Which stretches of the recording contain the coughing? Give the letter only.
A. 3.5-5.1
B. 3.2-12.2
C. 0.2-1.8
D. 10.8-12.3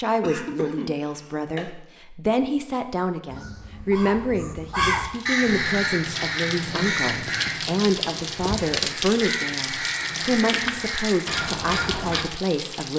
C.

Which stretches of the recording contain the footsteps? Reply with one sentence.
The footsteps can't be heard in this clip.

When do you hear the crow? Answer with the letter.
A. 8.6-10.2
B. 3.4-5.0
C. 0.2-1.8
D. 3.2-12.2
D.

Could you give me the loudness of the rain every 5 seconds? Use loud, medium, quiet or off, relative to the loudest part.
off, loud, loud.